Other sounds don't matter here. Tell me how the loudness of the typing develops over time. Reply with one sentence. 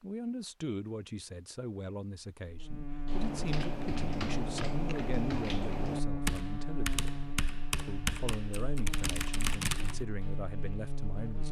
The volume of the typing stays about the same.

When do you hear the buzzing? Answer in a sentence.
The buzzing can be heard from 2.5 to 11.4 s.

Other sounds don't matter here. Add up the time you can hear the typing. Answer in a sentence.
The typing can be heard for 7 seconds in total.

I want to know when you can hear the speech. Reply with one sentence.
You can hear the speech from 0.0 to 7.0 s and from 7.8 to 11.4 s.